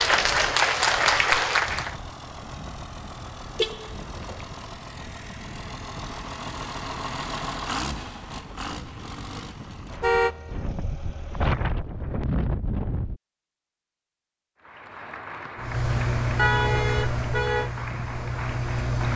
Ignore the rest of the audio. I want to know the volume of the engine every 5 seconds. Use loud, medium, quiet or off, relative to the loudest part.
quiet, medium, quiet, loud.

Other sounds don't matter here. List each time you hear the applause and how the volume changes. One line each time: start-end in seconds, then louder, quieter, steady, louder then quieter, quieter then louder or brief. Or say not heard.
0.0-1.9 brief
14.6-19.1 steady.